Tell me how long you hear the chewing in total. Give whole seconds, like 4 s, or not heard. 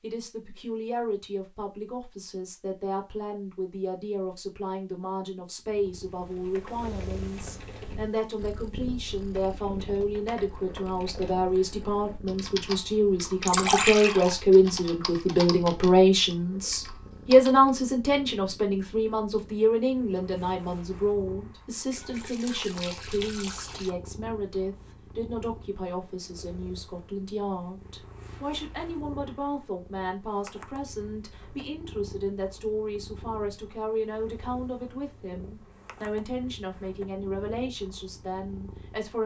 not heard.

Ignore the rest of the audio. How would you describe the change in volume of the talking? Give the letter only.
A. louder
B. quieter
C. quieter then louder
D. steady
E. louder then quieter
E.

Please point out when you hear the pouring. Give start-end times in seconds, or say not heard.
13.4-14.3, 21.9-23.9.